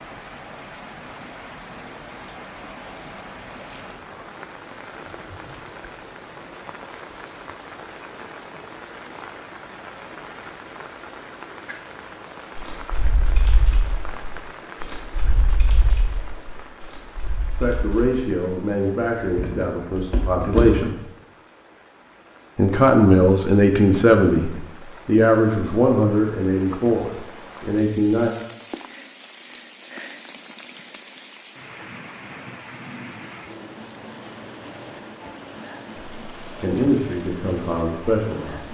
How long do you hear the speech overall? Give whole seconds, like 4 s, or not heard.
12 s.